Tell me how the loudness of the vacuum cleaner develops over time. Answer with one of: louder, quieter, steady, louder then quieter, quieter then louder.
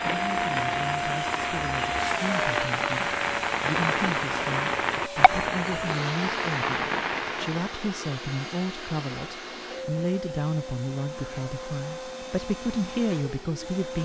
quieter.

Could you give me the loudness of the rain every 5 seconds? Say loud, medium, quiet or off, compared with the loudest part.
loud, loud, off.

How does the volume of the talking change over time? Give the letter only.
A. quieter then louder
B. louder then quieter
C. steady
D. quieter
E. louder
E.